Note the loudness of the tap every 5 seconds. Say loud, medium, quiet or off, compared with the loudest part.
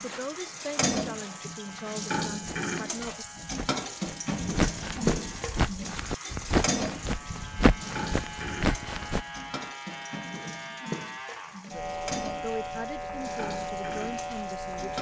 loud, loud, medium.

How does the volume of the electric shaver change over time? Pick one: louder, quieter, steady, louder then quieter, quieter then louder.
louder.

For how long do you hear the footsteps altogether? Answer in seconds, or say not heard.
9 s.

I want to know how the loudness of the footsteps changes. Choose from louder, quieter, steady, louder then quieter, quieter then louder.
louder.